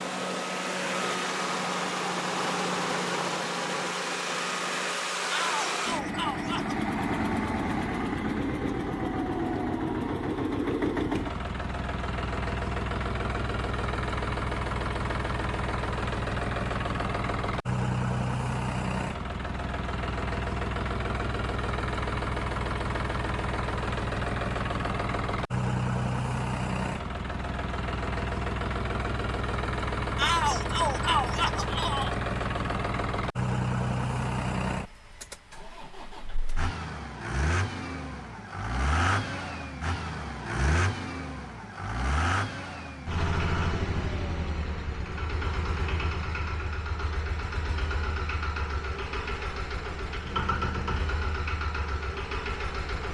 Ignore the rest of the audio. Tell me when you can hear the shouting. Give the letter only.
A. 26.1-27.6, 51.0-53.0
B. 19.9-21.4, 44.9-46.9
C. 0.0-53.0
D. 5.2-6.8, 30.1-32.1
D.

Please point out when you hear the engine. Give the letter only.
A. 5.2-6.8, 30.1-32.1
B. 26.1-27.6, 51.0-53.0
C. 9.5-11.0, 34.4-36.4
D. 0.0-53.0
D.